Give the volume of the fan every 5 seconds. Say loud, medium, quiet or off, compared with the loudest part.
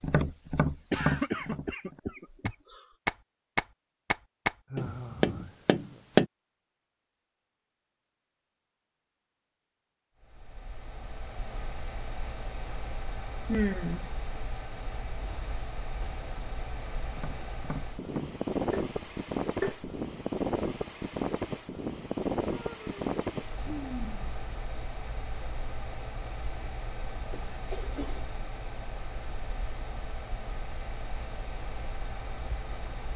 off, off, medium, loud, loud, medium, medium.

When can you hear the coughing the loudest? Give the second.
1 s.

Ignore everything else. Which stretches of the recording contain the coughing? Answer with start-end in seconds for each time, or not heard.
0.9-2.8, 27.3-28.2.